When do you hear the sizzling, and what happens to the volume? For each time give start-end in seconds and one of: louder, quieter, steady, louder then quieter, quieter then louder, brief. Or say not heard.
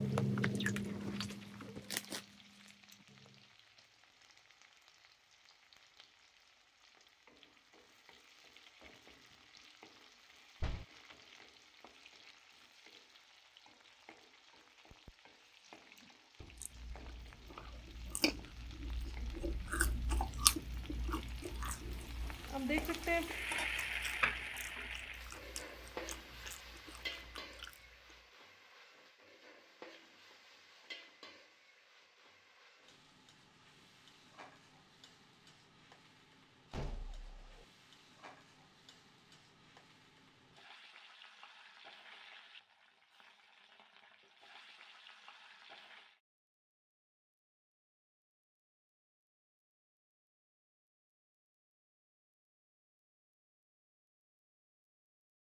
0.0-46.2 louder then quieter.